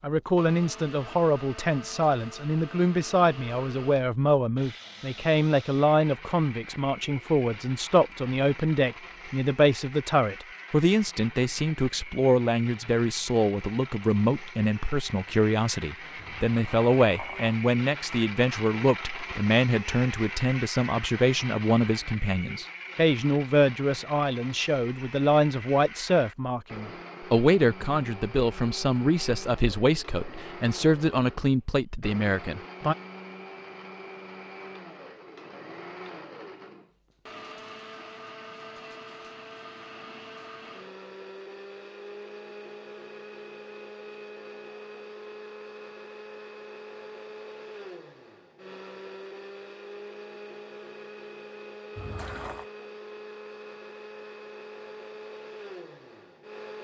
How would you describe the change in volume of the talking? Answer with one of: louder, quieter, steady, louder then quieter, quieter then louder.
steady.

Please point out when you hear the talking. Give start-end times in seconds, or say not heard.
0.0-33.0.